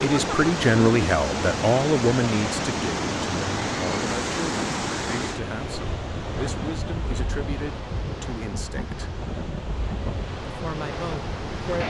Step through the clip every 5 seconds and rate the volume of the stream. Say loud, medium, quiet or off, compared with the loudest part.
loud, medium, medium.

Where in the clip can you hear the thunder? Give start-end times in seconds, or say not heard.
6.3-10.3.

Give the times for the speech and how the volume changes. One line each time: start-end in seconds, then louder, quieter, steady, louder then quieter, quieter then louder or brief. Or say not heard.
0.0-9.1 quieter
10.4-11.8 brief.